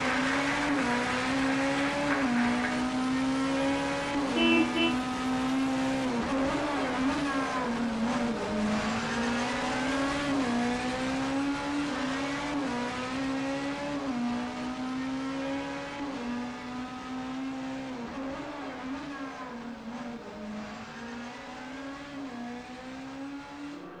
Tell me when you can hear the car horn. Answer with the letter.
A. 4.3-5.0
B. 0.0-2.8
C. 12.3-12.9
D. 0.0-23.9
A.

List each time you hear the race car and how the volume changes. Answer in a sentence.
You can hear the race car from 0.0 to 23.9 s, getting quieter.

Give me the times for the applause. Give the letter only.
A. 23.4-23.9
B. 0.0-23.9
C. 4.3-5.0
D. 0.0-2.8
D.